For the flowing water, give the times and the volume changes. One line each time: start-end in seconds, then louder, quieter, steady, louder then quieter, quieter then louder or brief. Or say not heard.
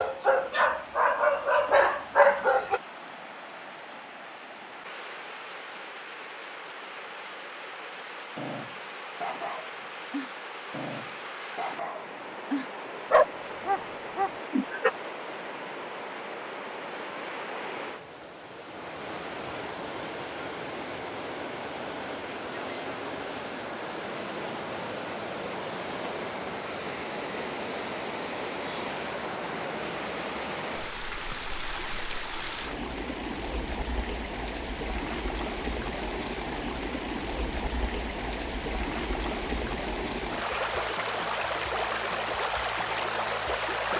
0.0-43.9 louder.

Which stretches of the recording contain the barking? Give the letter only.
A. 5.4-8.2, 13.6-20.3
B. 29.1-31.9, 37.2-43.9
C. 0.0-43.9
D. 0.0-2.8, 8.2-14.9
D.